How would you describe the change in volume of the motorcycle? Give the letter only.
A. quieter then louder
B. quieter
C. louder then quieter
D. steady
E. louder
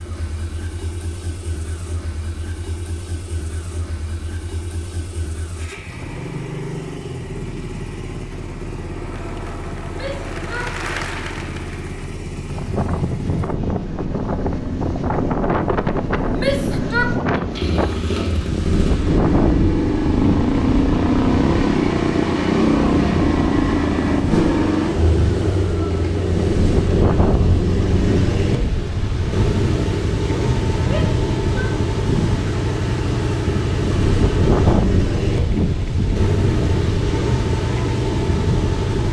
E.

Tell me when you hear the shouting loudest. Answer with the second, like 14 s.
17 s.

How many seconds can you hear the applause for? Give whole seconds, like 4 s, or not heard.
3 s.